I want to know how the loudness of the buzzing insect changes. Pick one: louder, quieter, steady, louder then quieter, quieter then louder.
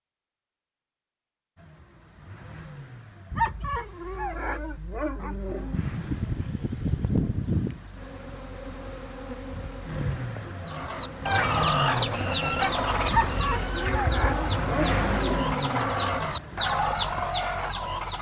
louder.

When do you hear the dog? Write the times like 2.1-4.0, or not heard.
3.3-5.8, 13.1-15.5.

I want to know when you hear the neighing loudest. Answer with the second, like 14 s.
7 s.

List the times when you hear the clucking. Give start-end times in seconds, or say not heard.
10.7-18.1.